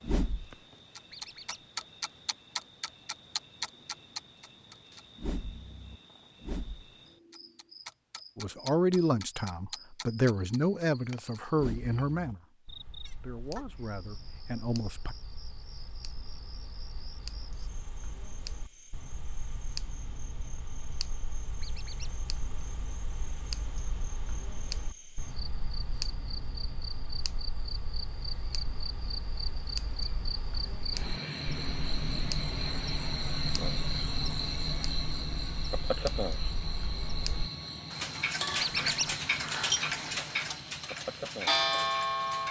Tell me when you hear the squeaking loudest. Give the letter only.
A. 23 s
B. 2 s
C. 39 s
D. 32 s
C.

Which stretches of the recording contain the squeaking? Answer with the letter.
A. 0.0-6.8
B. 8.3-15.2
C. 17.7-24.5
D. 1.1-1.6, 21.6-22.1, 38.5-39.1
D.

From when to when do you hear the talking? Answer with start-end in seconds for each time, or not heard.
8.3-15.2.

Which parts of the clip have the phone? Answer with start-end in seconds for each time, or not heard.
not heard.